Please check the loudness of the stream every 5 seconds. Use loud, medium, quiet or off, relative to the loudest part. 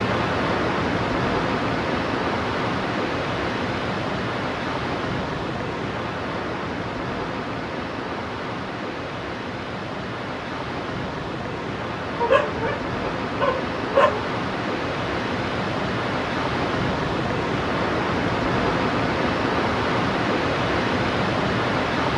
loud, medium, medium, loud, loud.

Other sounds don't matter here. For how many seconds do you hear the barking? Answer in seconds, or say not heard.
2 s.